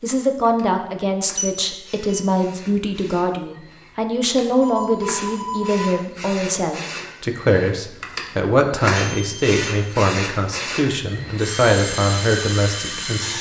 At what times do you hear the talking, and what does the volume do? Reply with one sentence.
You can hear the talking from 0.0 to 13.3 s, at a steady volume.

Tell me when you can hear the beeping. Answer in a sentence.
You can hear the beeping from 1.4 to 2.2 s, from 4.6 to 5.9 s and from 8.9 to 9.6 s.